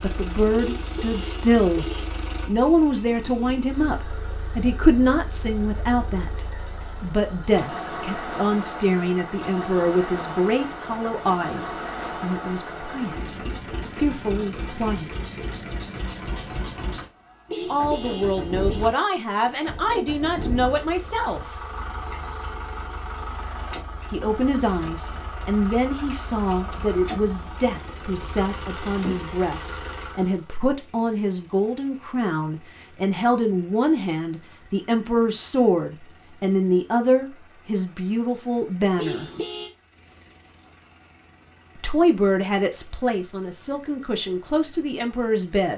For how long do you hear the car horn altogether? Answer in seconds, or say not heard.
4 s.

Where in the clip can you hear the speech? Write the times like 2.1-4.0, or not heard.
0.0-1.9, 2.5-13.3, 13.9-15.1, 17.7-21.4, 24.1-39.3, 41.8-45.7.